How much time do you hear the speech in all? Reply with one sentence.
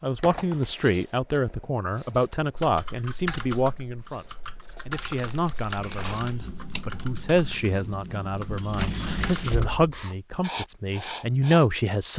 You can hear the speech for 12 seconds altogether.